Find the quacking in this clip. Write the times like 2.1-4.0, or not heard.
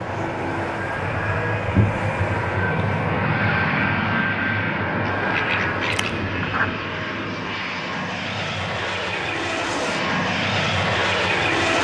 5.0-6.7.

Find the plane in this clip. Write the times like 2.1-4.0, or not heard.
0.0-11.7.